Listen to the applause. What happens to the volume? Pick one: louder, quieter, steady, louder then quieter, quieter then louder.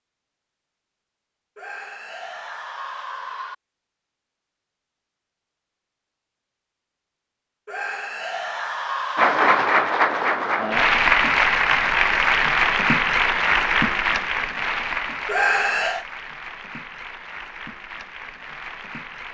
quieter.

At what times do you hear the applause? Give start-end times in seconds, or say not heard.
9.2-19.2.